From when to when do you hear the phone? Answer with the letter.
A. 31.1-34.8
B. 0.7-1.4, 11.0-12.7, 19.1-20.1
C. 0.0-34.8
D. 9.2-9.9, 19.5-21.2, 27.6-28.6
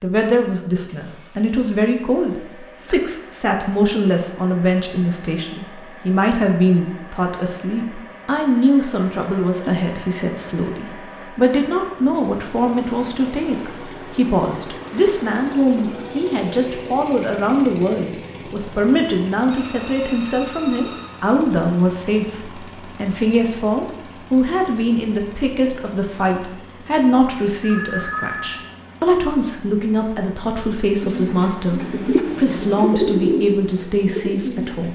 D.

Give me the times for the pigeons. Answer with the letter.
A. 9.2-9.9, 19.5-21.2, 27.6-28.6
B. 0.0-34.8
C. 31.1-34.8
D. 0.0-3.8
C.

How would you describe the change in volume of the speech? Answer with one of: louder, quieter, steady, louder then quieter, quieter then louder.
steady.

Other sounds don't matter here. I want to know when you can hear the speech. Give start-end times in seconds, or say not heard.
0.0-34.8.